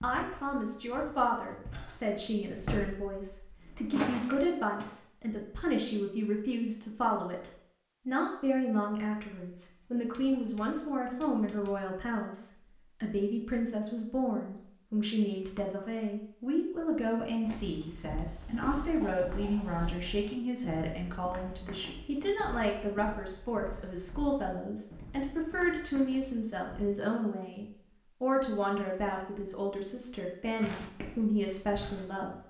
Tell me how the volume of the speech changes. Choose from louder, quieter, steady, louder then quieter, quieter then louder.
steady.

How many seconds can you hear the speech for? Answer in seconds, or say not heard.
32 s.